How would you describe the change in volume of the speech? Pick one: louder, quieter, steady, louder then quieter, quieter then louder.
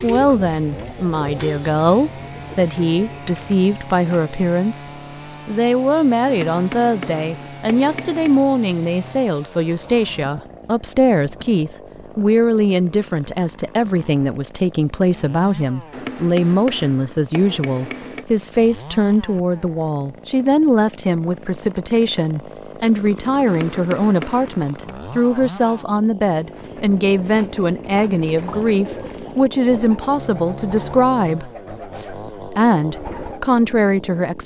steady.